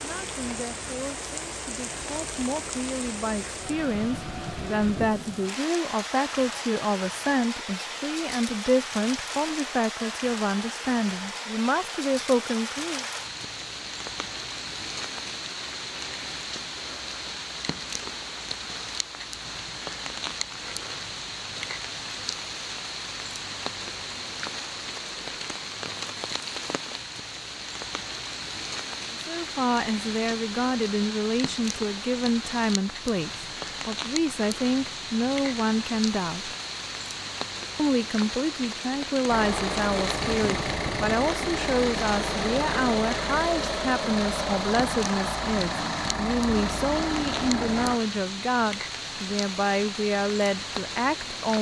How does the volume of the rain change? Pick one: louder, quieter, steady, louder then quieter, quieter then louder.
steady.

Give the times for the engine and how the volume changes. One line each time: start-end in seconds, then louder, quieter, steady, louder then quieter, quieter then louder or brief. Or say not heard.
39.2-48.0 steady.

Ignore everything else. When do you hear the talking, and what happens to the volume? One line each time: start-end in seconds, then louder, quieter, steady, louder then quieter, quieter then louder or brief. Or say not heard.
0.0-13.1 louder
29.1-36.5 steady
37.8-51.5 steady.